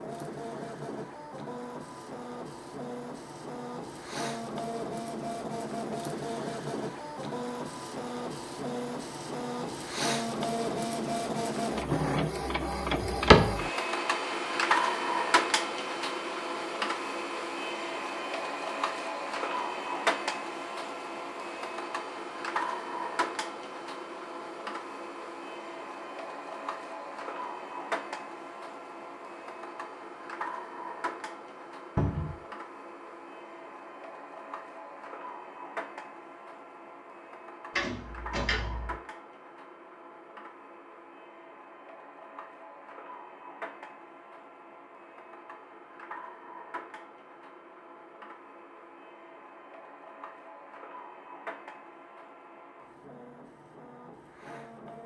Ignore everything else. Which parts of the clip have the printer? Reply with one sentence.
You can hear the printer from 0.0 to 55.0 s.